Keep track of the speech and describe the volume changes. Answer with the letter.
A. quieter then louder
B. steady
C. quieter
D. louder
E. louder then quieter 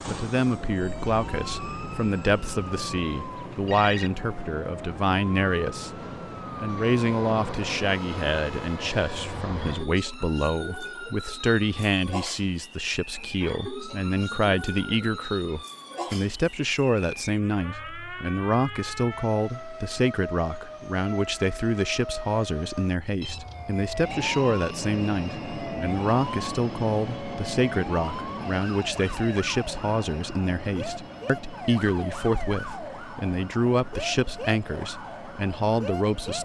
B.